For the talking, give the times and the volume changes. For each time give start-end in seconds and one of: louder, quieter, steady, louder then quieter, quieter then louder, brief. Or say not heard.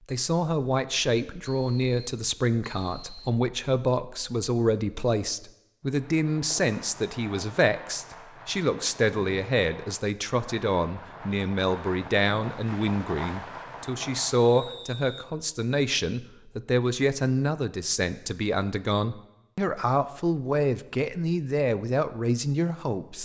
0.1-23.2 steady.